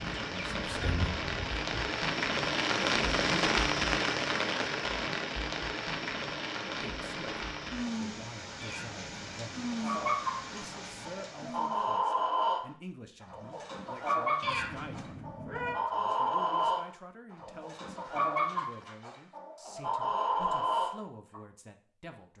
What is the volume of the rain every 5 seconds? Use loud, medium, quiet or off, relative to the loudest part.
loud, medium, quiet, off, off.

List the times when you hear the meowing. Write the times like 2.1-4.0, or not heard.
8.6-9.4, 14.4-15.8.